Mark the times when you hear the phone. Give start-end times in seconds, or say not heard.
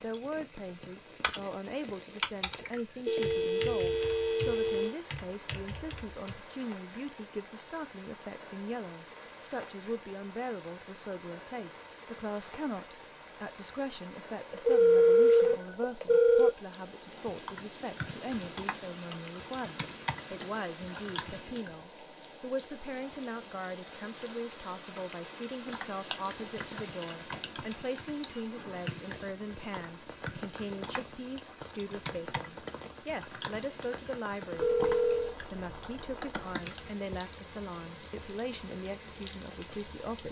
3.0-5.0, 14.5-16.5, 34.5-35.4.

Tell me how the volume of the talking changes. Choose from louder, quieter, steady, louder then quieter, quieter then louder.
steady.